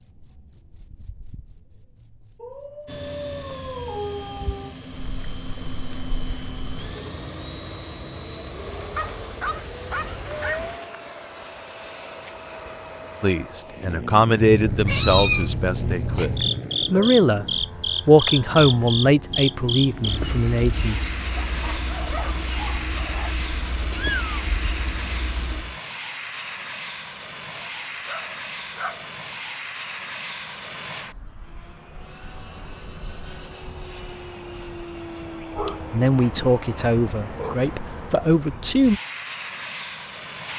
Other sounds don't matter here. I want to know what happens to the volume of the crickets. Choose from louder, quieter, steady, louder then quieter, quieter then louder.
quieter.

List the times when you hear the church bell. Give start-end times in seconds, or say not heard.
not heard.